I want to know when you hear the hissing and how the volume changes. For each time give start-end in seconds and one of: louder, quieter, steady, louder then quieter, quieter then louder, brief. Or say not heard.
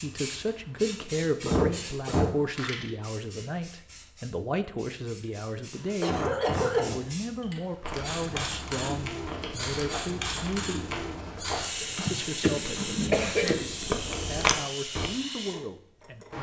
0.0-16.3 quieter then louder.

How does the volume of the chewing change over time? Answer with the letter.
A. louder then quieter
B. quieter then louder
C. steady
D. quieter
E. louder
E.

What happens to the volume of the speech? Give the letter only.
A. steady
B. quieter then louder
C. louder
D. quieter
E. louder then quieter
D.